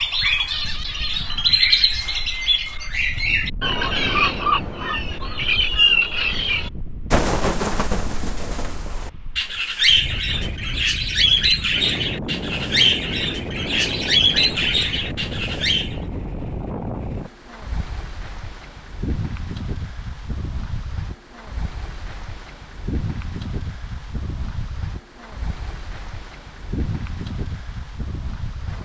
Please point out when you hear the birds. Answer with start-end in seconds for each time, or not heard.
0.0-15.9.